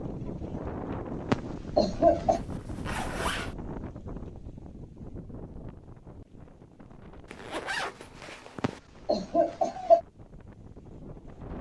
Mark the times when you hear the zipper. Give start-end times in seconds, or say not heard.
2.3-3.5, 7.2-8.8.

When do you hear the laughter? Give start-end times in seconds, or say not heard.
1.3-2.4, 8.6-10.0.